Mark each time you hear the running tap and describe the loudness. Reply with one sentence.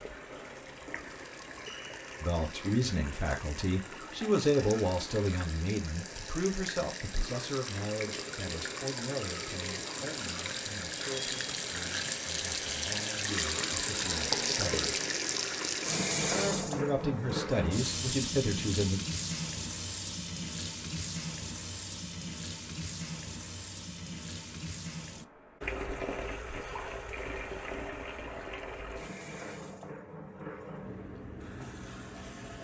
You can hear the running tap from 0.0 to 32.6 s, getting louder then quieter.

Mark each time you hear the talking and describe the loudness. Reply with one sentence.
You can hear the talking from 2.2 to 14.9 s, getting quieter; and briefly from 16.3 to 19.0 s.